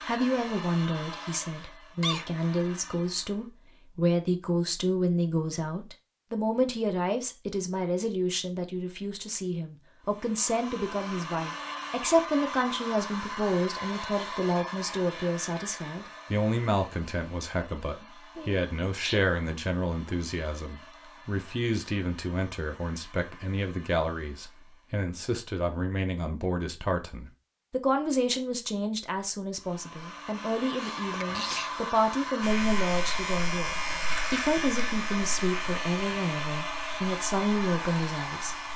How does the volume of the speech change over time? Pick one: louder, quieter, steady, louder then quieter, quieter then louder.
steady.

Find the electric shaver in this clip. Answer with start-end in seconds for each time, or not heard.
32.4-38.7.